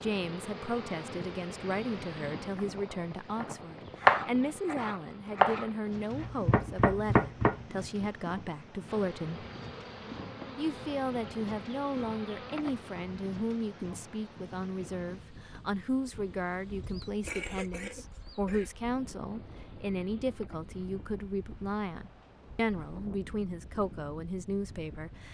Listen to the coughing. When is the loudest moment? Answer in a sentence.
The volume of the coughing peaks at 17 seconds.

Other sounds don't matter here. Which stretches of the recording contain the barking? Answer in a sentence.
The barking can't be heard in this clip.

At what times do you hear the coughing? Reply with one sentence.
The coughing can be heard from 16.9 to 18.7 s.